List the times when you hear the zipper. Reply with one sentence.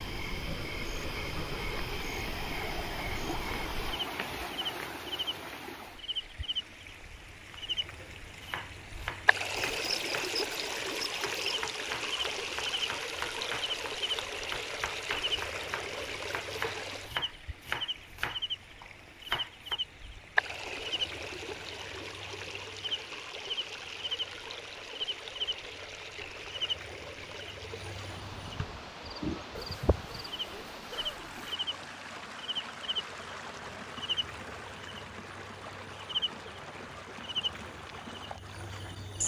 The zipper can be heard from 29.6 to 31.6 s.